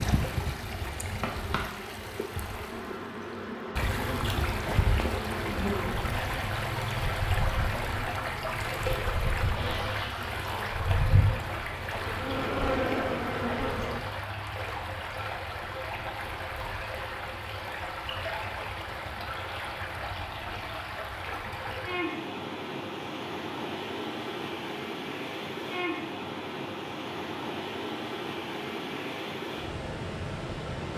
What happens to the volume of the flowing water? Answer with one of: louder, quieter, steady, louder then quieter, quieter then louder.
steady.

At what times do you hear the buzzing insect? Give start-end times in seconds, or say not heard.
0.0-14.0.